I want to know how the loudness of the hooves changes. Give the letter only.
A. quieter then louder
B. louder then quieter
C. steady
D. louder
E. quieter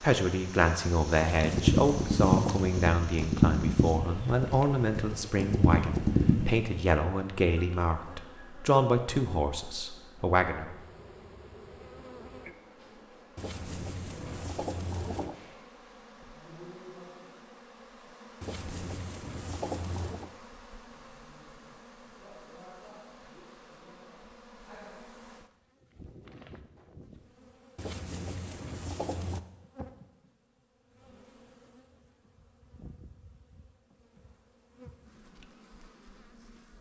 A.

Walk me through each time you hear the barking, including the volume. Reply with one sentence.
You can't hear the barking here.